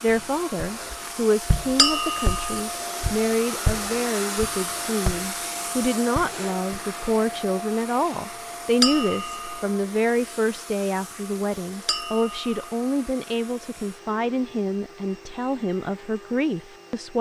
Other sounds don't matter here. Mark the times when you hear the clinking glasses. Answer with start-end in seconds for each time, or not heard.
1.8-2.5, 8.8-9.6, 11.8-12.4.